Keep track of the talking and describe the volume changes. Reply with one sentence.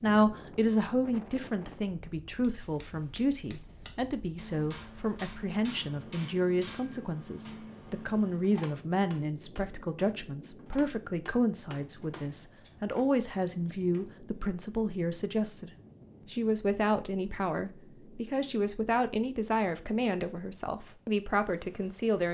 The loudness of the talking stays about the same.